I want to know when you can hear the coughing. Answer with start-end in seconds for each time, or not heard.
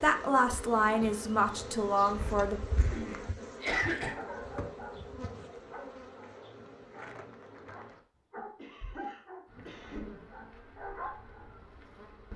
2.8-4.2, 8.6-10.1.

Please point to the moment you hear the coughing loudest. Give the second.
4 s.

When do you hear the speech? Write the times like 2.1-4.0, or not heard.
0.0-2.6.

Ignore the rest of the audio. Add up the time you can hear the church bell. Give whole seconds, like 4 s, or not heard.
not heard.